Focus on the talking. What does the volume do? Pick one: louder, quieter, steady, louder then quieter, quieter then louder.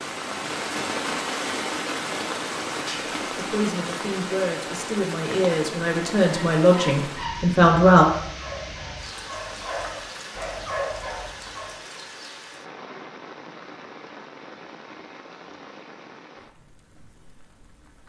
louder.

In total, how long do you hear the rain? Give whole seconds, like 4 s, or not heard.
18 s.